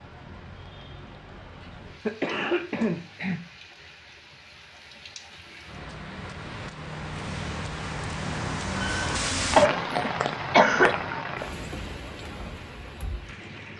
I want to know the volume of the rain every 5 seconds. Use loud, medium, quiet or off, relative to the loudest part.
quiet, loud, loud.